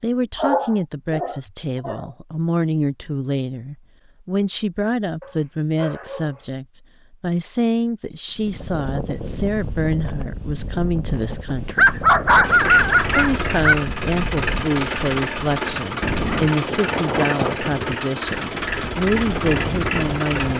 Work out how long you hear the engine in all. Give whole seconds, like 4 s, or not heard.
8 s.